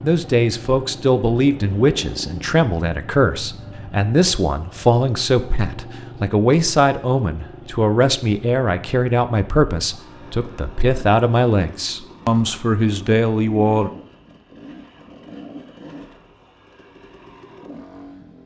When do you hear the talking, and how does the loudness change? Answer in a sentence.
You can hear the talking from 0.0 to 13.9 s, at a steady volume.